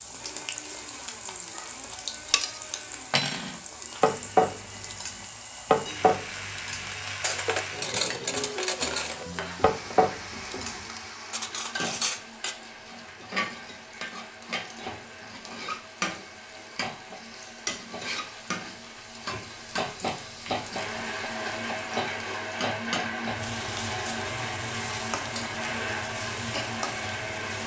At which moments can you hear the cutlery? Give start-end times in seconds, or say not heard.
2.2-12.6.